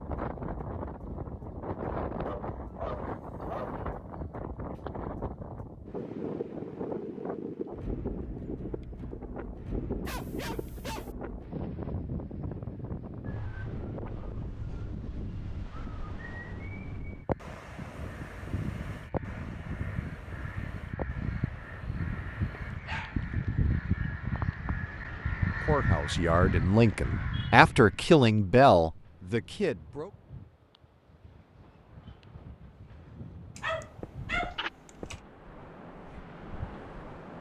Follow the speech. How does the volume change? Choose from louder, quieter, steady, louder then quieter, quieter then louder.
louder then quieter.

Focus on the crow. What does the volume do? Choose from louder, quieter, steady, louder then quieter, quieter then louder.
louder.